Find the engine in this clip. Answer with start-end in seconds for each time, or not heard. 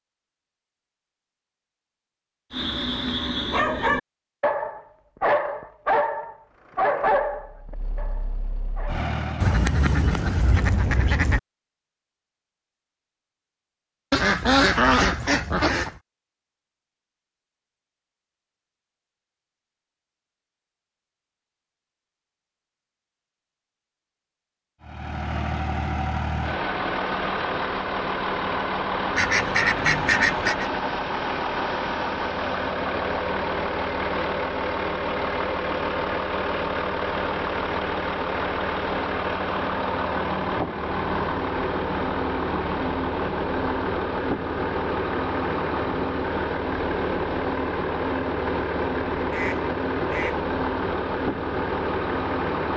6.5-9.6, 24.8-52.7.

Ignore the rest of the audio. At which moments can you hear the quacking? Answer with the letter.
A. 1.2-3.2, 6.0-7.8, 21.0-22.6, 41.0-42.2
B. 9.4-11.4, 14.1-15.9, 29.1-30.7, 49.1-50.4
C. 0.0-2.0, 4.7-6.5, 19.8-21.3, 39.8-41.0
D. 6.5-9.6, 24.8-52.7
B.